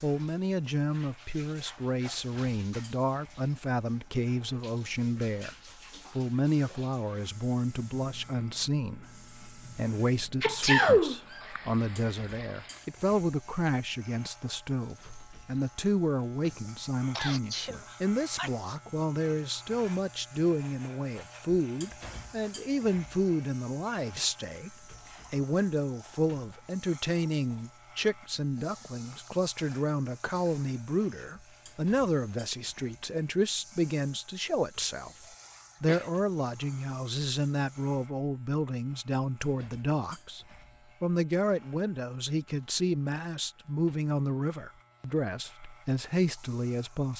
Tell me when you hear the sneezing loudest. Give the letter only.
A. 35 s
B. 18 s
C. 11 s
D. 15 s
C.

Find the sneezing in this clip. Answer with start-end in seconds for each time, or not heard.
10.4-11.6, 17.1-18.8, 34.5-36.1.